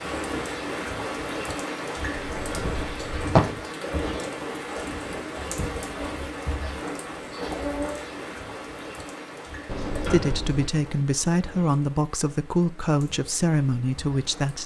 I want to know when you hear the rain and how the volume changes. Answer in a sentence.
The rain can be heard from 0.0 to 14.6 s, getting quieter.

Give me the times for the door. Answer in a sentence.
You can hear the door from 2.1 to 3.4 s and from 9.7 to 10.7 s.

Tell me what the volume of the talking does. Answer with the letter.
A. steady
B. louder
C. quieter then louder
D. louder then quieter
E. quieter
A.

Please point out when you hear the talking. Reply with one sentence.
The talking can be heard from 10.1 to 14.6 s.